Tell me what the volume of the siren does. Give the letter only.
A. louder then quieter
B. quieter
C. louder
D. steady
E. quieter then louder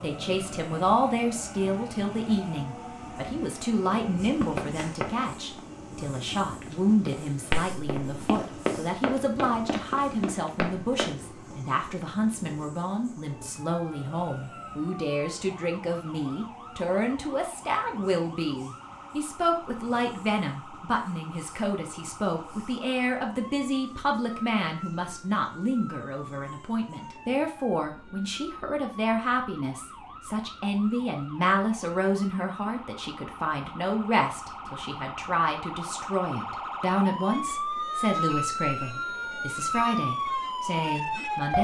C.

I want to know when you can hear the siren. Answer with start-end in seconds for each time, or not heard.
13.2-41.5.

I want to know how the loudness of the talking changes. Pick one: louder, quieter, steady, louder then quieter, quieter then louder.
steady.